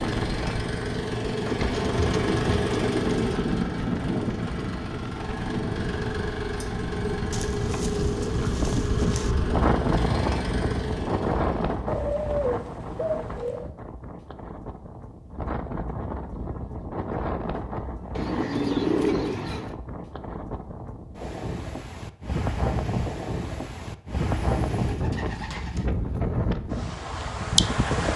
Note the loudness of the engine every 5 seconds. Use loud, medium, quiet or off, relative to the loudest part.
loud, loud, medium, off, off, off.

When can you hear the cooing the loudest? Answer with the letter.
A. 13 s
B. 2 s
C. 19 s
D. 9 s
C.